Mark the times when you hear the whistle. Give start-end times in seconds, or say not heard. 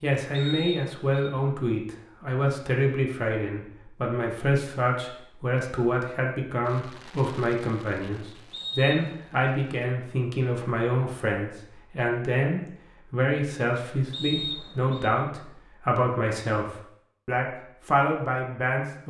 0.3-1.3, 8.5-9.2, 14.1-15.1.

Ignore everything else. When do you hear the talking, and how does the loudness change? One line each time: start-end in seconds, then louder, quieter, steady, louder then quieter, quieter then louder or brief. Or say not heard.
0.0-19.0 steady.